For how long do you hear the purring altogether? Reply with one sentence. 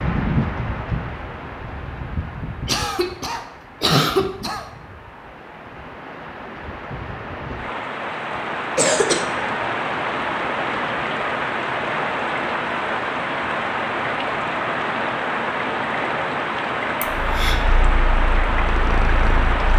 The purring can be heard for 3 seconds in total.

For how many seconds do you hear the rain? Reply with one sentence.
The rain can be heard for 20 seconds in total.